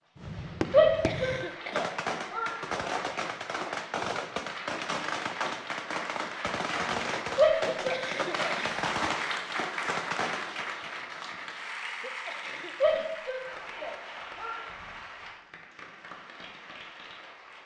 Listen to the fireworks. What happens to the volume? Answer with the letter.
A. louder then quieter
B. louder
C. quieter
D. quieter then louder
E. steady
E.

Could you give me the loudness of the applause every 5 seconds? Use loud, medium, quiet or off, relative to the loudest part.
medium, loud, loud, medium.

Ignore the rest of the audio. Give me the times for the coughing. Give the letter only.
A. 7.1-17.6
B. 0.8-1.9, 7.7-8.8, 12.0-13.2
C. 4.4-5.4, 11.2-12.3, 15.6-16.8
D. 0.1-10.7
B.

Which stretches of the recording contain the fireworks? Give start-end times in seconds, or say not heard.
0.1-10.7.